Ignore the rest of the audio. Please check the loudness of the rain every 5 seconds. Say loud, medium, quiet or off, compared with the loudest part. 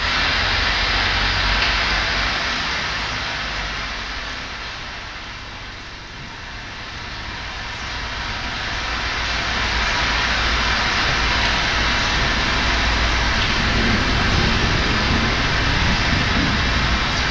loud, medium, loud, loud.